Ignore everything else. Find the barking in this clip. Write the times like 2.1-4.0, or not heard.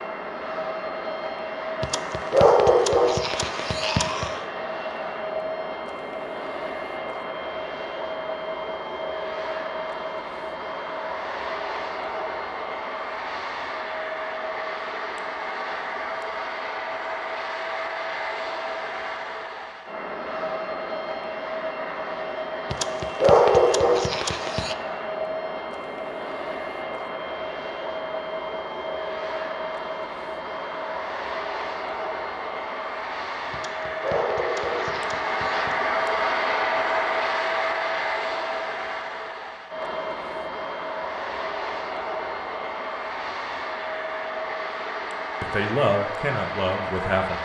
1.8-4.4, 22.7-24.8, 33.5-35.8.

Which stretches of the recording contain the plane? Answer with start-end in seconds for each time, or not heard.
0.0-47.3.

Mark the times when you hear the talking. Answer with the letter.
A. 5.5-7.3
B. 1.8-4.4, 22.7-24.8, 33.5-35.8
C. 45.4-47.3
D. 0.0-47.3
C.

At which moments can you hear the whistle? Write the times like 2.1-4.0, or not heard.
not heard.